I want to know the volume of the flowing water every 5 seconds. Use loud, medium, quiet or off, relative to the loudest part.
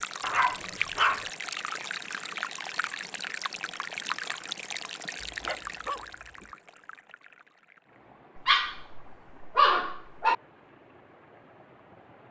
loud, medium, quiet.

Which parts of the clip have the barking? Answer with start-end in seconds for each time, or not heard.
0.2-1.3, 5.2-6.5, 8.3-10.3.